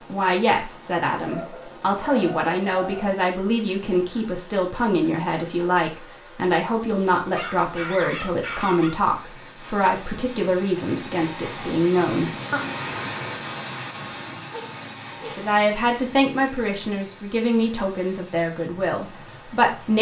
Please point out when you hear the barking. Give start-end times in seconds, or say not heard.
1.2-3.1, 7.3-8.9, 14.5-15.5.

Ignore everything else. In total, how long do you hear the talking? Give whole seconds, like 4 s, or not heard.
17 s.